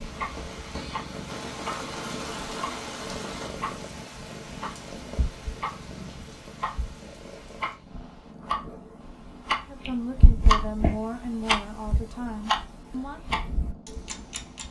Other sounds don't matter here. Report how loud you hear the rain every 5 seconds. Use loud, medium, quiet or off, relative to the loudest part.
loud, medium, off.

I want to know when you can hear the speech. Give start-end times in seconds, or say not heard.
9.7-13.2.